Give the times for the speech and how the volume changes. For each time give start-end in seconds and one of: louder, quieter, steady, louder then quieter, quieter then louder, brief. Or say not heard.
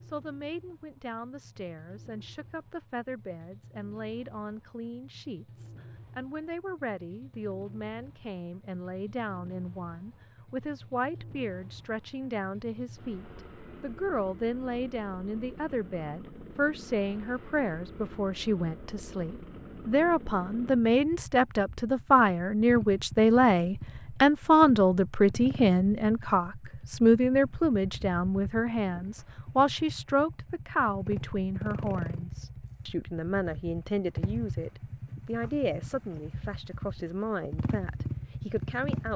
0.0-39.1 louder then quieter.